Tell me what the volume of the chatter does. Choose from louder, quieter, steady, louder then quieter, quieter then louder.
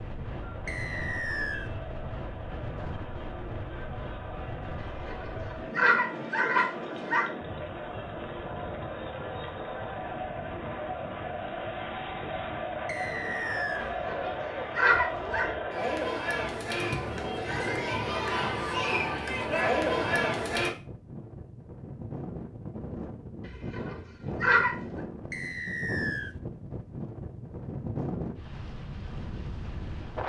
louder.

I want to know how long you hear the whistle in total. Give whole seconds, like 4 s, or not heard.
3 s.